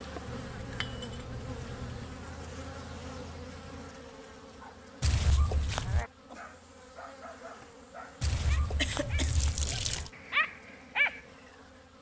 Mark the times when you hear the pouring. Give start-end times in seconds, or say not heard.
0.2-2.1, 5.0-6.0, 8.2-10.1.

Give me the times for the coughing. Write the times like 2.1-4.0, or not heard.
8.8-9.3.